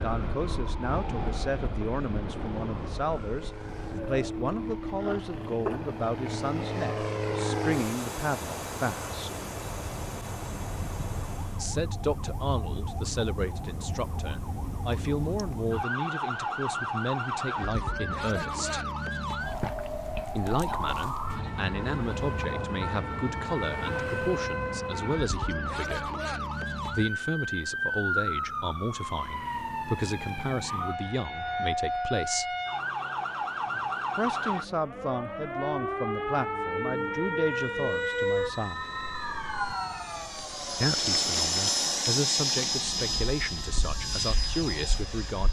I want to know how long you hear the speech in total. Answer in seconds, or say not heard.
37 s.